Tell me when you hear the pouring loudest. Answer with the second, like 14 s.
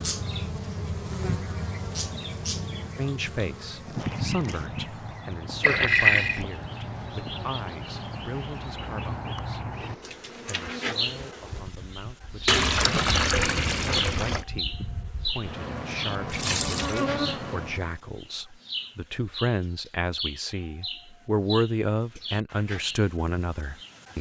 6 s.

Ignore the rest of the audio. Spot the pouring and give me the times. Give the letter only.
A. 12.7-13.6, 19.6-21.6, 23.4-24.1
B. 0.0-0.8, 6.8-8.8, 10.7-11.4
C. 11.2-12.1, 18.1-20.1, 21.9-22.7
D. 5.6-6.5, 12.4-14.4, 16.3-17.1
D.